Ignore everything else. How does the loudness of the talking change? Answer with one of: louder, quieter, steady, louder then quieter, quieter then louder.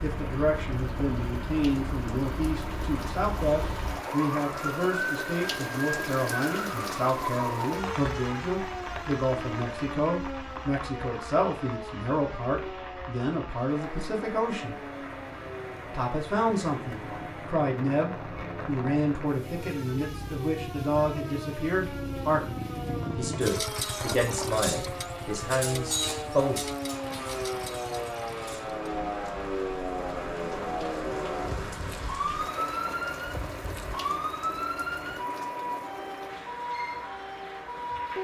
steady.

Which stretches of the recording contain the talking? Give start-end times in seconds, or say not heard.
0.0-14.8, 15.9-26.6.